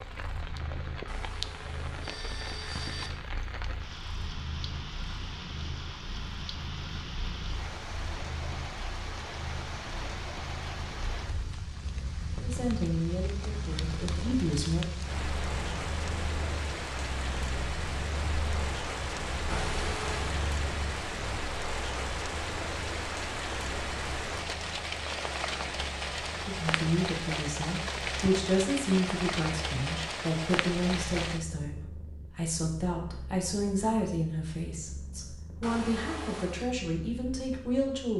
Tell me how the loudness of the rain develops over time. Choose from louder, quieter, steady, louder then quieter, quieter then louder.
louder.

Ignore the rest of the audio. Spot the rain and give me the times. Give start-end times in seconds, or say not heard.
0.0-31.4.